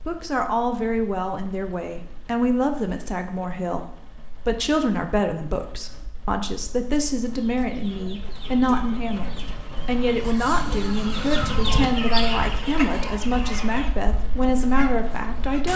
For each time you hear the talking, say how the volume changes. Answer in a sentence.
The talking can be heard from 0.1 to 15.7 s, at a steady volume.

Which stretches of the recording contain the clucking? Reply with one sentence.
The clucking can be heard from 7.3 to 13.9 s and from 14.6 to 15.7 s.